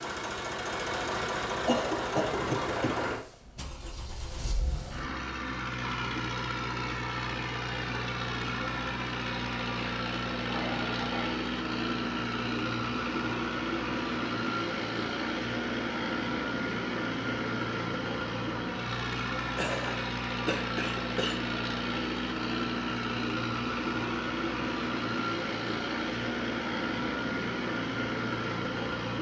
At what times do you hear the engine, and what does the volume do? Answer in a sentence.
The engine can be heard from 0.0 to 29.1 s, at a steady volume.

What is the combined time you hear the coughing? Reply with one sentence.
The coughing can be heard for 4 seconds in total.